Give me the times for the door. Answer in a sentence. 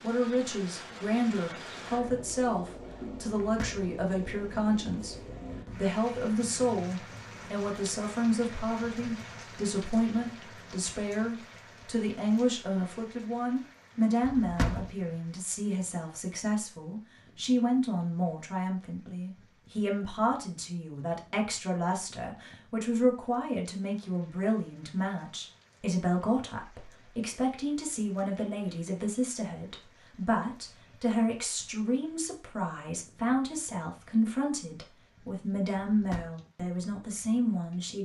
You can hear the door from 3.4 to 3.9 s, from 14.2 to 14.9 s and from 35.8 to 36.3 s.